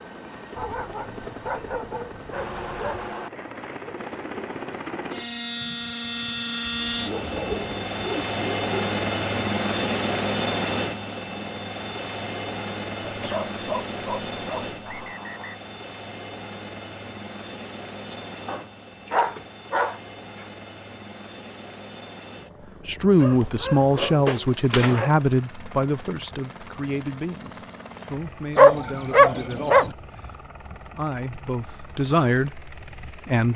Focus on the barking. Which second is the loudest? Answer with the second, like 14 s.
29 s.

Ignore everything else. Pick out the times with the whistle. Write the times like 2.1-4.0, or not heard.
14.8-15.6.